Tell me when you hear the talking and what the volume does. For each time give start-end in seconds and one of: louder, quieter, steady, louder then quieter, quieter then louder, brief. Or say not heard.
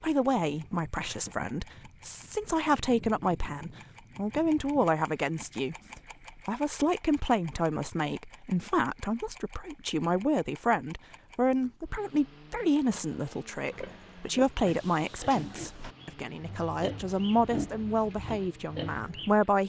0.0-19.6 steady.